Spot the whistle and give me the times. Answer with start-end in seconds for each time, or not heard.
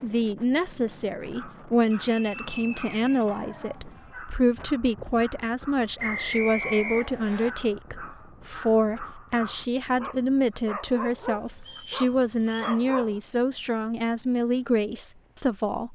1.9-3.4, 6.0-7.5, 11.6-12.8.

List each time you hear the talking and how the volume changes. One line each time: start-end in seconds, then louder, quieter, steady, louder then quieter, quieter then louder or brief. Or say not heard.
0.0-15.8 steady.